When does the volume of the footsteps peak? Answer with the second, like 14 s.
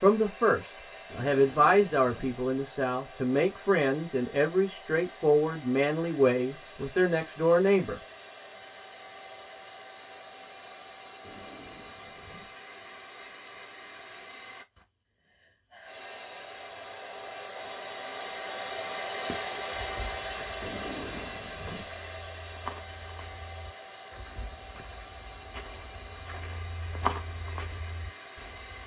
27 s.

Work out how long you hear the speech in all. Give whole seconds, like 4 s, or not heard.
8 s.